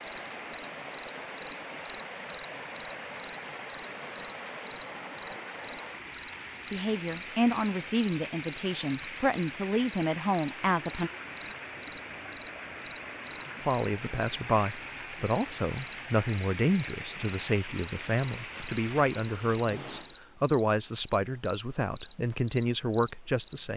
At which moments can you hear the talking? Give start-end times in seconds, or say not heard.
6.7-11.1, 13.6-23.7.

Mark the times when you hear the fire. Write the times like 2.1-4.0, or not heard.
not heard.